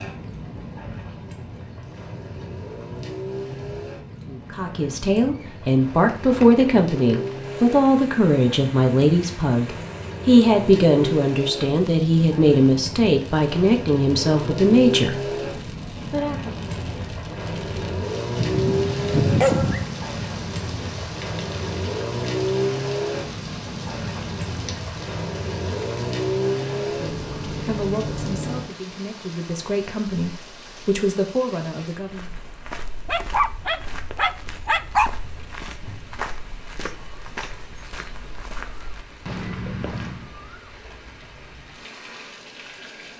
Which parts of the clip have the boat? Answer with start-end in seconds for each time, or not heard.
0.0-28.6.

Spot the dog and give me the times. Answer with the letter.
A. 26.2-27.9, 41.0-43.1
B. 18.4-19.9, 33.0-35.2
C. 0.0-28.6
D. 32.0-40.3
B.